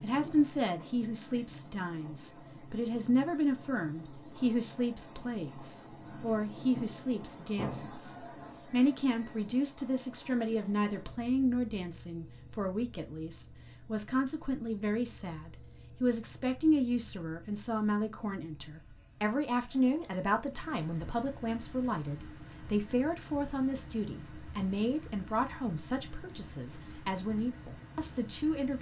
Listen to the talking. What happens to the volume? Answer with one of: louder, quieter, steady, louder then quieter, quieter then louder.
steady.